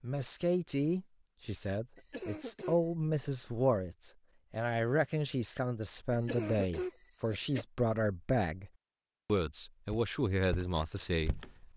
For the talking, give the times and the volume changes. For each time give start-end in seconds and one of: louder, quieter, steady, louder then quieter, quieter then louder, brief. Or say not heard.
0.0-11.6 steady.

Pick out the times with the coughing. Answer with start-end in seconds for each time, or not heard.
1.9-2.8, 6.1-7.7.